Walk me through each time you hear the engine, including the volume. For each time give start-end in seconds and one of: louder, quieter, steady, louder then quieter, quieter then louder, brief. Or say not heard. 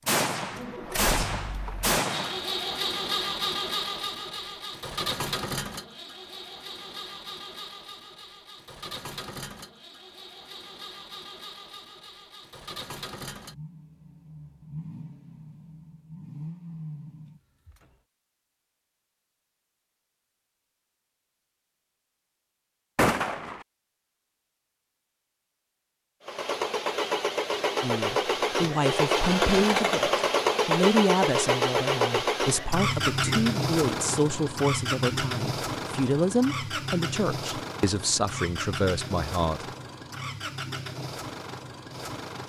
0.0-17.9 quieter
26.2-42.4 quieter.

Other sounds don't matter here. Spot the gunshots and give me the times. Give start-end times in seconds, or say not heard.
0.1-2.4, 22.9-23.6.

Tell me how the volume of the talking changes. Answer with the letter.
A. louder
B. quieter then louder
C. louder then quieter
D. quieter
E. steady
E.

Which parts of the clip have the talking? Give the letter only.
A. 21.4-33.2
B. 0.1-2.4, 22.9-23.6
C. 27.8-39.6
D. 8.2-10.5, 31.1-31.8
C.